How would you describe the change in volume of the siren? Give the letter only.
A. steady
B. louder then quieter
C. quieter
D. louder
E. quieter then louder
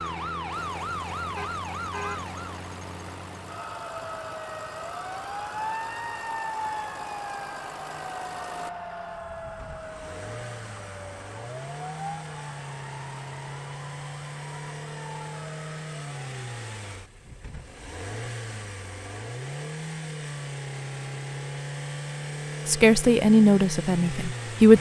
C.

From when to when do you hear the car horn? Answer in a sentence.
The car horn can be heard from 1.4 to 2.4 s.